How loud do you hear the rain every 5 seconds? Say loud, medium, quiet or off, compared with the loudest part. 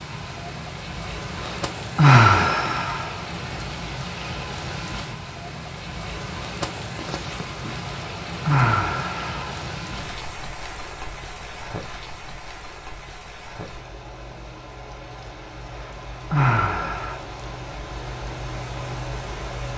loud, loud, medium, loud.